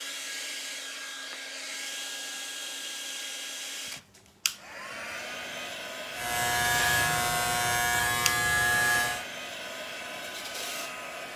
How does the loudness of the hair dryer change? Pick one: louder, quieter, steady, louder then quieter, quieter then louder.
steady.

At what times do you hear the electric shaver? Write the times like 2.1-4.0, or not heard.
6.1-9.2.